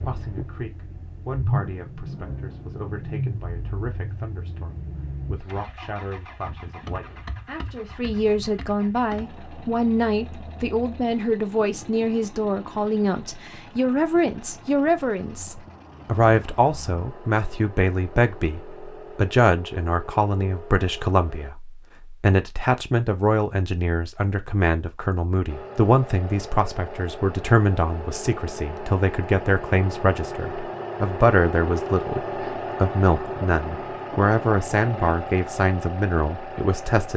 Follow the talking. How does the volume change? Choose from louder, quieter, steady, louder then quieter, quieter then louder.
louder.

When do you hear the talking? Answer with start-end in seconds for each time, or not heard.
0.0-32.2, 32.8-37.1.